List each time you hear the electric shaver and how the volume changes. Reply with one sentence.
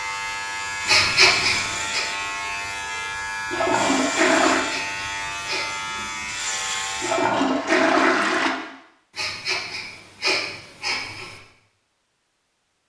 The electric shaver can be heard from 0.0 to 7.3 s, at a steady volume.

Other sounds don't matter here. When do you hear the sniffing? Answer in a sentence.
You can hear the sniffing from 0.8 to 2.0 s, from 4.6 to 5.8 s and from 9.2 to 11.3 s.